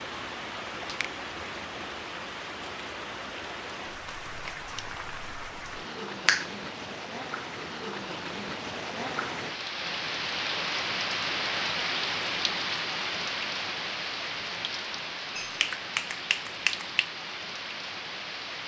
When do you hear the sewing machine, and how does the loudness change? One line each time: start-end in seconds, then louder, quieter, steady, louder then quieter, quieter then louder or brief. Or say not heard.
not heard.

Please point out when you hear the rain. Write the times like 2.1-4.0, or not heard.
0.0-18.6.